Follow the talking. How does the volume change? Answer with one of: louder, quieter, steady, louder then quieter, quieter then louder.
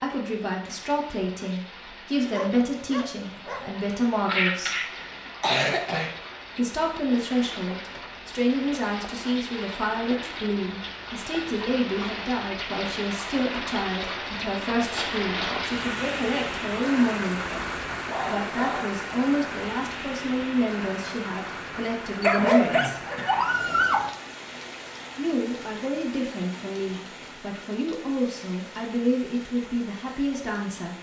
steady.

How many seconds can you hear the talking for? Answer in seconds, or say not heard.
27 s.